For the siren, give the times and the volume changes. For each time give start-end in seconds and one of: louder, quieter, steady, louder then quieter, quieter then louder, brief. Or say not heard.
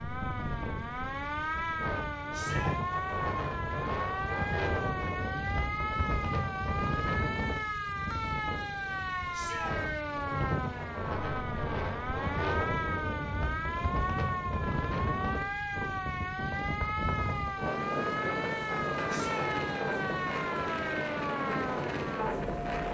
0.0-22.8 steady.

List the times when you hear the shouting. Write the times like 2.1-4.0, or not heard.
2.3-2.8, 9.3-9.8, 19.1-19.5.